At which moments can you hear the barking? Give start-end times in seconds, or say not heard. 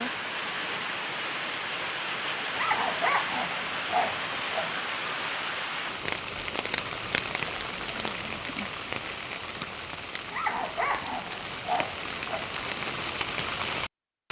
2.5-4.8, 10.3-12.6.